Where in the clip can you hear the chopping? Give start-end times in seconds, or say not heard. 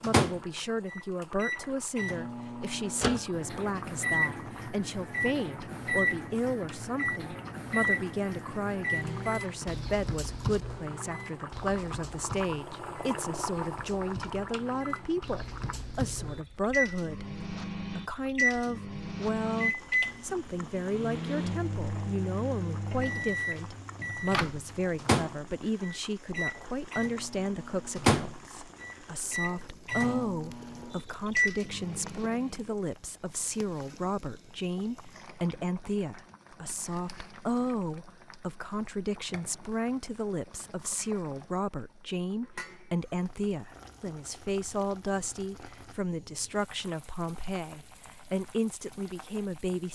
not heard.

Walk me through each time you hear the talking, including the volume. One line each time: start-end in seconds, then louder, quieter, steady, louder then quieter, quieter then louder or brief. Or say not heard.
0.0-49.9 steady.